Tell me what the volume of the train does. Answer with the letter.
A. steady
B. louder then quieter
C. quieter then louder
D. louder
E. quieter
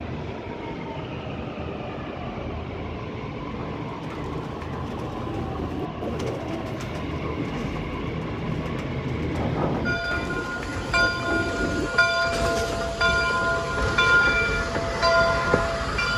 D.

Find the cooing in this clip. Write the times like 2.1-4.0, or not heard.
3.4-12.8.